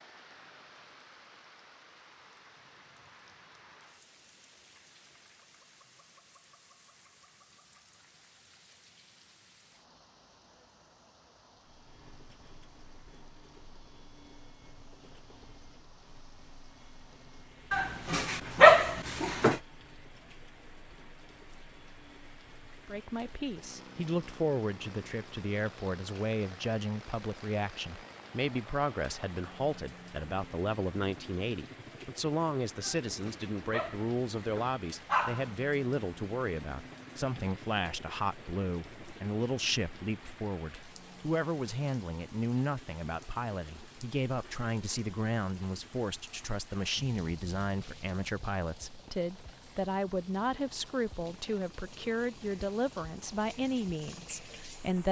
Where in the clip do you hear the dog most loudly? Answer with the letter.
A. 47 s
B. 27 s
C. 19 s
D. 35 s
C.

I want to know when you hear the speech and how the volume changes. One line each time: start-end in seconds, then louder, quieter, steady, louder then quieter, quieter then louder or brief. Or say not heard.
22.9-55.0 steady.